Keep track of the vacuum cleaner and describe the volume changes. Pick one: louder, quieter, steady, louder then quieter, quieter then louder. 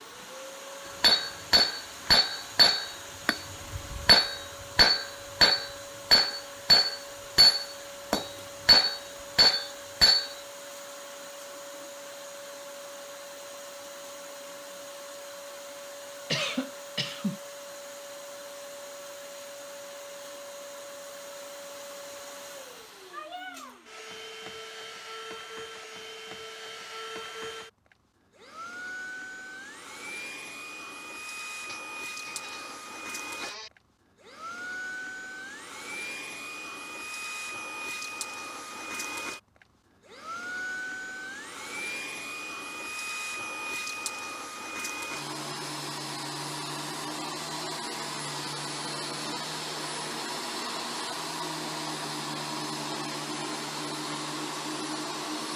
louder.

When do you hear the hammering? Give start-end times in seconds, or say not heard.
1.0-10.3.